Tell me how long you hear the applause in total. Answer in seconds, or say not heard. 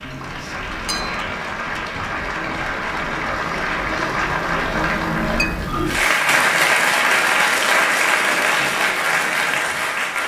10 s.